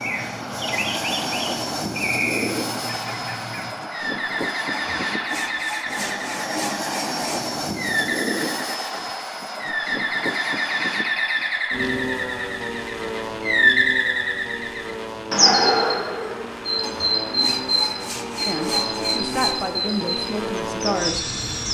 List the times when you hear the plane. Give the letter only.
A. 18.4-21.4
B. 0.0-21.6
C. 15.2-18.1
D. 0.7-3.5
B.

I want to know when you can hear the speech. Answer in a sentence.
You can hear the speech from 18.4 to 21.4 s.